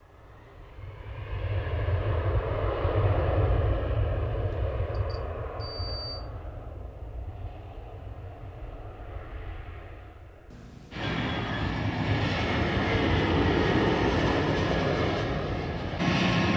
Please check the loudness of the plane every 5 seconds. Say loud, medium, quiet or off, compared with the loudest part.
medium, quiet, loud, loud.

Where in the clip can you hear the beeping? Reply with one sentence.
You can hear the beeping from 4.5 to 6.2 s and from 10.5 to 11.7 s.